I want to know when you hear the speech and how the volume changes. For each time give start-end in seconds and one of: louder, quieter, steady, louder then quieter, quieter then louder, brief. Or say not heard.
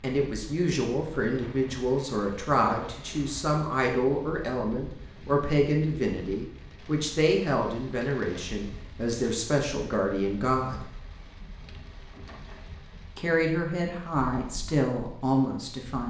0.0-10.8 steady
13.2-16.0 brief.